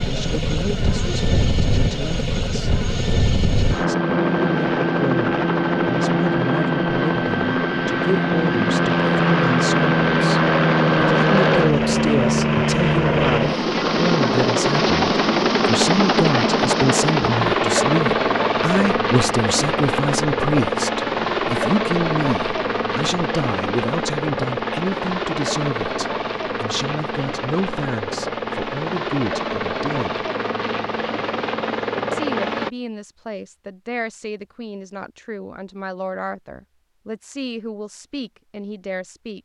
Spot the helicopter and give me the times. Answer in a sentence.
You can hear the helicopter from 0.0 to 32.7 s.